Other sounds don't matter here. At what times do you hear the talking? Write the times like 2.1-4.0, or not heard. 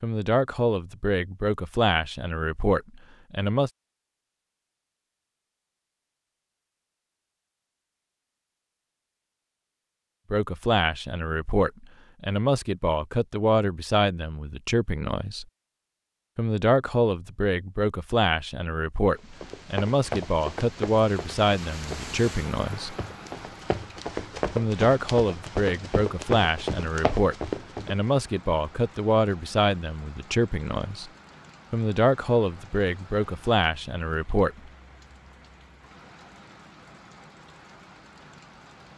0.0-3.7, 10.3-15.4, 16.4-22.9, 24.6-31.1, 31.7-34.5.